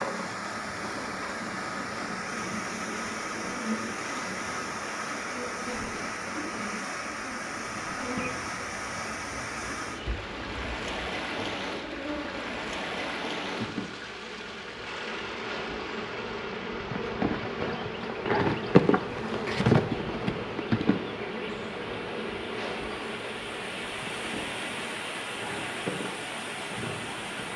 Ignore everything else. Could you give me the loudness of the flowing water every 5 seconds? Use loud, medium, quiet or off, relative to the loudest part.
loud, loud, loud, medium, loud, loud.